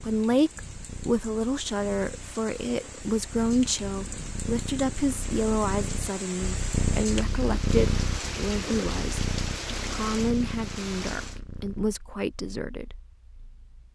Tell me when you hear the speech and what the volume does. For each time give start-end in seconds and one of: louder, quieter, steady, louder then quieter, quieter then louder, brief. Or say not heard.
0.1-12.9 steady.